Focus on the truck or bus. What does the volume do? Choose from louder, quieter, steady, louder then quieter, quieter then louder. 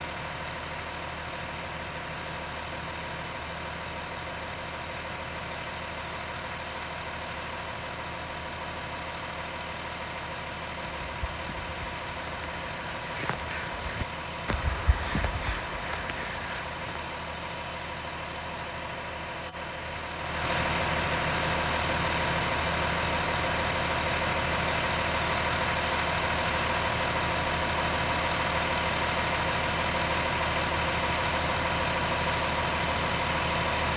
louder.